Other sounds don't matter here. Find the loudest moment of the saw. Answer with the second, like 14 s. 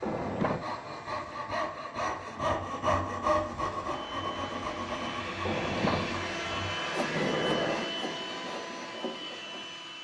3 s.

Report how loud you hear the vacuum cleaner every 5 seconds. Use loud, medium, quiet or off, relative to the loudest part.
medium, loud.